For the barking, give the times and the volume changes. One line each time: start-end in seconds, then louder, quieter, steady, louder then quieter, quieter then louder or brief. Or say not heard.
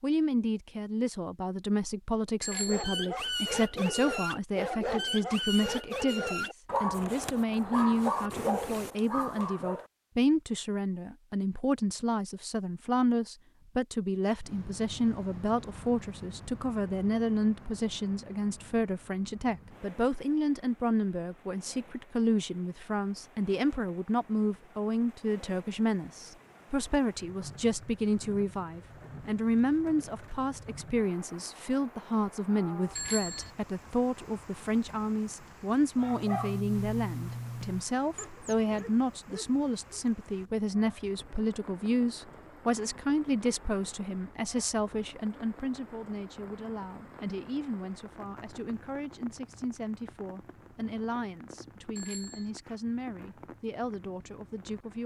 2.5-9.8 steady
36.0-40.0 quieter.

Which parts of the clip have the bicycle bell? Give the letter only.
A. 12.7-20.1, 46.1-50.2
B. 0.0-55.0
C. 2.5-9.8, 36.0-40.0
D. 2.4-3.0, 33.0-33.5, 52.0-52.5
D.